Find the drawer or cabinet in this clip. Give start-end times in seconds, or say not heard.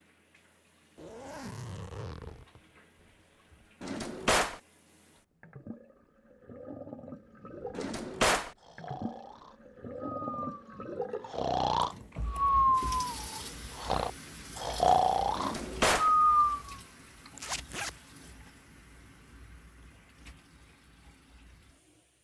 3.8-4.6, 7.7-8.5, 15.3-16.1.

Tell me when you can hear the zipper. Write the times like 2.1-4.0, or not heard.
0.9-3.7, 11.8-12.5, 17.4-17.9.